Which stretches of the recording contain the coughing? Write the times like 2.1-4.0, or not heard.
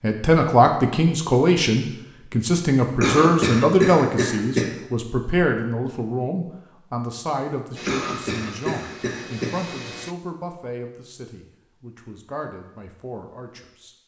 3.0-4.7, 7.8-9.6.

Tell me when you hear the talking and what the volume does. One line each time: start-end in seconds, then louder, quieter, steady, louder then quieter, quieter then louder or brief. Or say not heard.
0.0-13.9 quieter.